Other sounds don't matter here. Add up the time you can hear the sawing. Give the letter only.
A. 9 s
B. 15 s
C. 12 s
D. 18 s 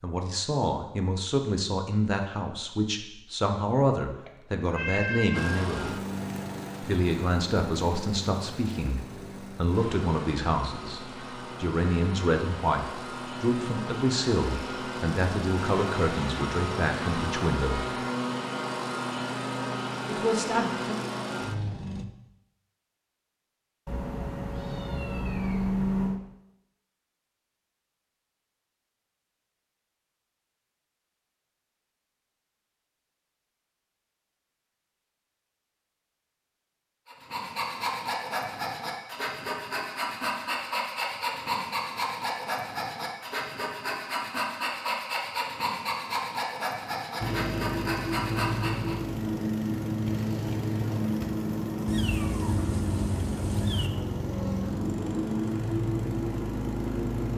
C.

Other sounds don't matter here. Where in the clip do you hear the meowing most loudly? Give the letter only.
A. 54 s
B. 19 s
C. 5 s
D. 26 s
D.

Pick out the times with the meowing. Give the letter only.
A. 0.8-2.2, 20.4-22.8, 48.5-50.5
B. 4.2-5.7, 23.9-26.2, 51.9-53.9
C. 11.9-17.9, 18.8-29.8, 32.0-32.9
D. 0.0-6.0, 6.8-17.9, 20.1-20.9
B.